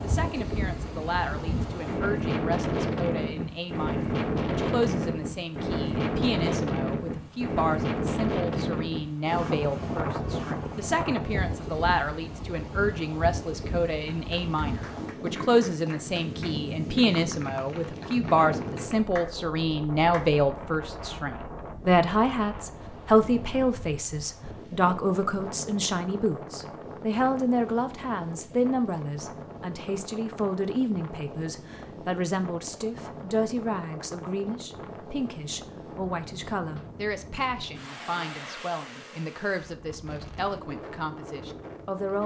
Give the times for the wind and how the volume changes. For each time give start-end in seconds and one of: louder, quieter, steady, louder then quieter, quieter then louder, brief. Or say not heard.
0.0-42.2 quieter.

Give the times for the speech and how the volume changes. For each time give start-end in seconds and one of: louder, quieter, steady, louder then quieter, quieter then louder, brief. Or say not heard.
0.0-42.2 louder then quieter.